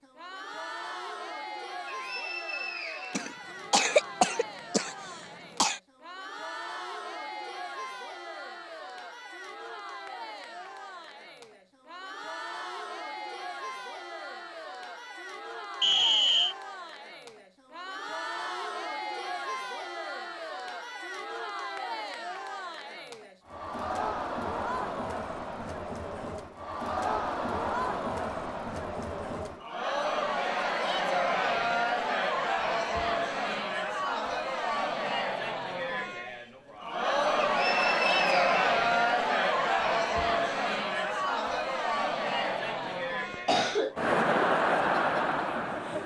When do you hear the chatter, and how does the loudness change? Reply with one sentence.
The chatter can be heard from 0.0 to 46.0 s, getting louder.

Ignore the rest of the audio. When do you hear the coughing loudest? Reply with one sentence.
The loudest moment of the coughing is at 4 seconds.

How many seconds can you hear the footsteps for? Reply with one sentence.
The footsteps can't be heard in this clip.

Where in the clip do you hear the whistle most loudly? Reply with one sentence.
The volume of the whistle peaks at 16 seconds.